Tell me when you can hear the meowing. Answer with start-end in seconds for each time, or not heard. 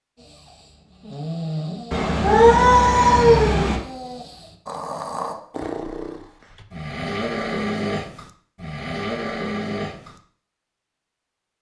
1.9-3.8.